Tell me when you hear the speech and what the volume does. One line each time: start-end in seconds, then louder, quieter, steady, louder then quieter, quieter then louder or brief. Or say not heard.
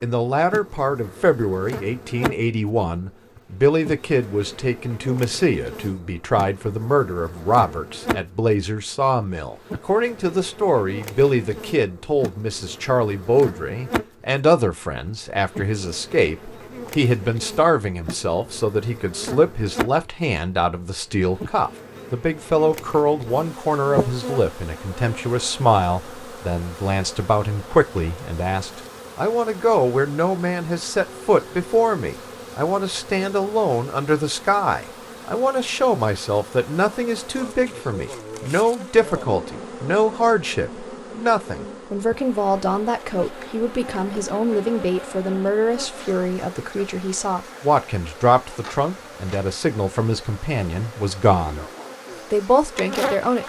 0.0-51.6 steady
52.3-53.4 brief.